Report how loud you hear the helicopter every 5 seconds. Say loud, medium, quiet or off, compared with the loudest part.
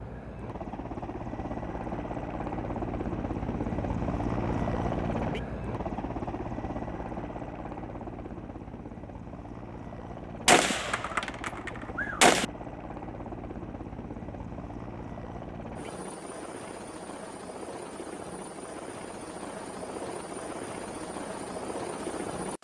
loud, loud, medium, medium, loud.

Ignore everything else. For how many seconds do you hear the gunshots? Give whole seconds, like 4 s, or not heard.
2 s.